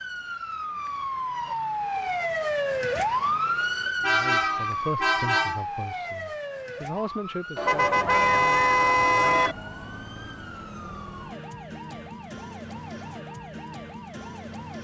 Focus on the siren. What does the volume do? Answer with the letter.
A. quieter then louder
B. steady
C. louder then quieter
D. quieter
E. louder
D.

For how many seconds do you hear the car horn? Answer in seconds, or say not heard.
4 s.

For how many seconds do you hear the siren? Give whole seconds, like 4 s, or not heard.
15 s.